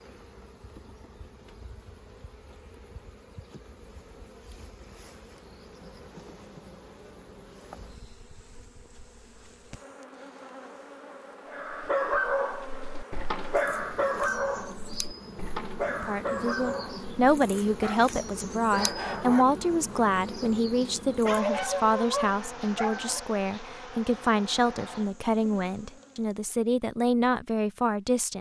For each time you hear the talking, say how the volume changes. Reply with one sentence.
The talking can be heard from 15.9 to 28.3 s, at a steady volume.